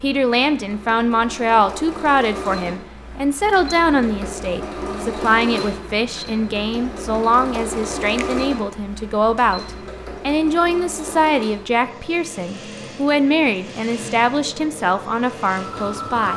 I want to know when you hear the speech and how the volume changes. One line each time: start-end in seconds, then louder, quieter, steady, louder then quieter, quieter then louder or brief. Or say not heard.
0.0-16.3 steady.